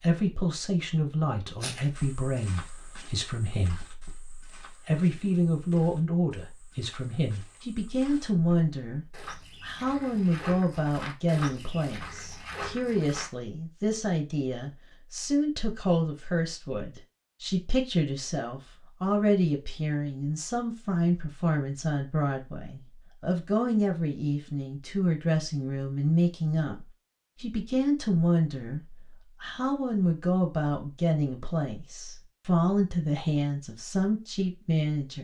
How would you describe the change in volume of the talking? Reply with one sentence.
The volume of the talking stays about the same.